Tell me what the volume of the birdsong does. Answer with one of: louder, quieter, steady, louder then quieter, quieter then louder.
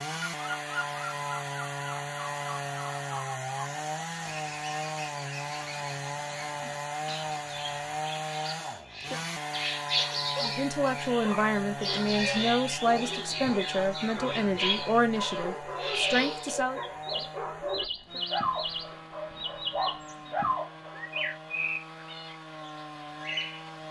louder.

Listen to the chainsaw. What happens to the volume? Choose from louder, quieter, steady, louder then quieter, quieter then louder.
quieter.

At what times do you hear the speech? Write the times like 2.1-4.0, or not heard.
10.4-16.8.